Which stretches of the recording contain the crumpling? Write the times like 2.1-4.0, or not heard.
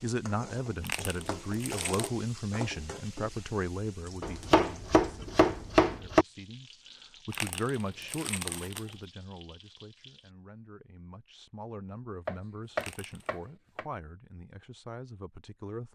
0.8-2.1, 7.3-8.9, 12.8-13.3.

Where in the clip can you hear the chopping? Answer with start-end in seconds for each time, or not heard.
4.2-6.2, 12.2-13.8.